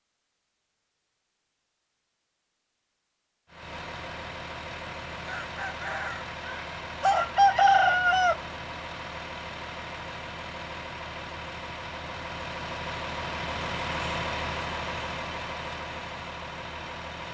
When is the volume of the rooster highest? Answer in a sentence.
The loudest moment of the rooster is at 8 seconds.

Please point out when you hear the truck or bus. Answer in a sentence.
The truck or bus can be heard from 3.5 to 17.3 s.